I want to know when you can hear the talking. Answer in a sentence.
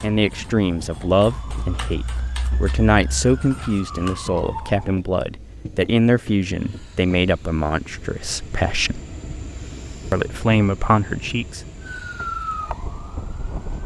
You can hear the talking from 0.0 to 9.0 s and from 10.1 to 11.6 s.